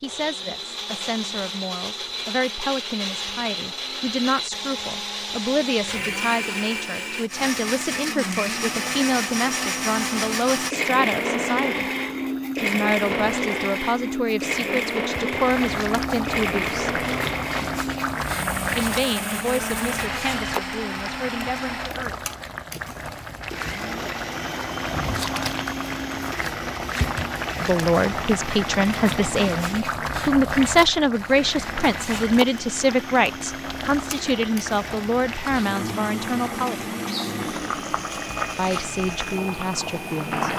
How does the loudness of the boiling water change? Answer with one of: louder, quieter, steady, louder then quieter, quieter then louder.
steady.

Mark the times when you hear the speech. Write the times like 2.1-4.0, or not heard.
0.0-11.8, 12.6-17.0, 18.8-22.3, 27.6-37.0, 38.5-40.5.